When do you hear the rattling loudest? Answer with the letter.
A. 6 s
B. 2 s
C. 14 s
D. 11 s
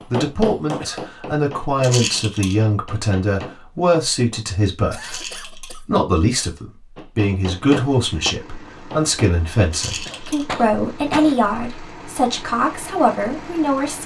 B.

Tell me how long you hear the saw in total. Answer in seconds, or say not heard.
not heard.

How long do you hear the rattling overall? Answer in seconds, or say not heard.
2 s.